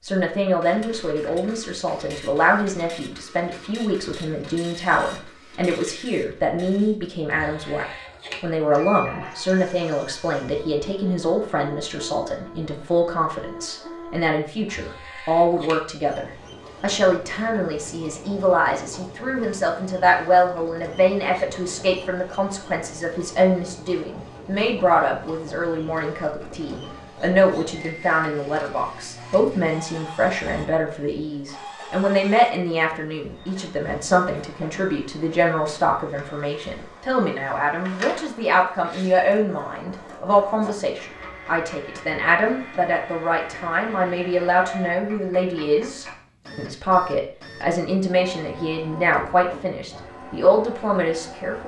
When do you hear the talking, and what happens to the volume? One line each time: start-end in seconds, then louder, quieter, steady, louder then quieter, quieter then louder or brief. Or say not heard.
0.0-51.6 steady.